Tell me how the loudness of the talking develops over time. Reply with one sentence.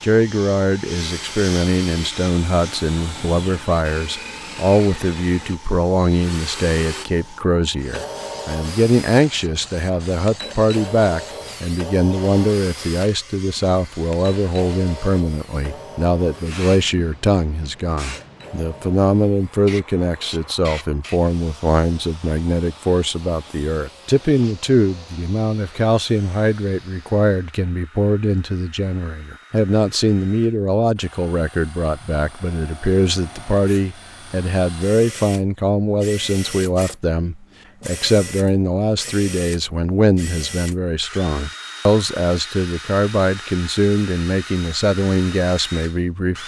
The volume of the talking stays about the same.